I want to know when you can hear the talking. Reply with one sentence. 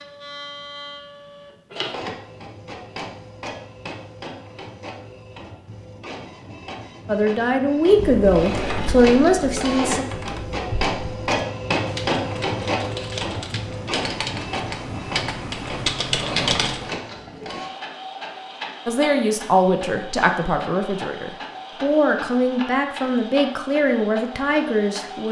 You can hear the talking from 7.0 to 10.1 s and from 18.9 to 25.2 s.